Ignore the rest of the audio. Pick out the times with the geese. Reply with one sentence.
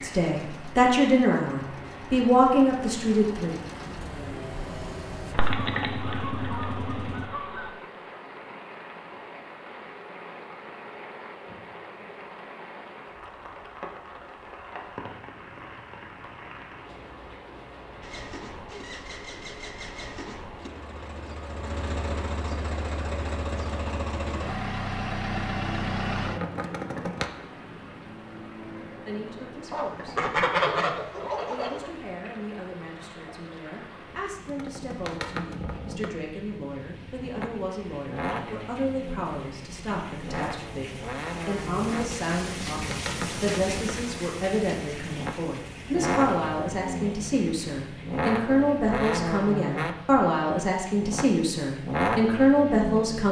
You can hear the geese from 5.3 to 7.7 s and from 29.7 to 31.9 s.